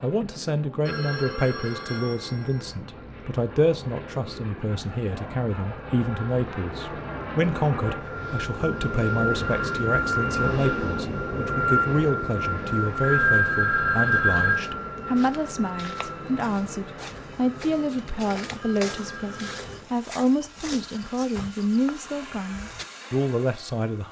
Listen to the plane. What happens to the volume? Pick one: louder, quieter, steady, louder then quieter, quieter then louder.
louder then quieter.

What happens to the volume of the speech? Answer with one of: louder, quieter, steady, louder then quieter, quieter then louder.
steady.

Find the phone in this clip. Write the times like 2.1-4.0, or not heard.
0.8-2.8, 13.0-14.6, 18.6-19.6.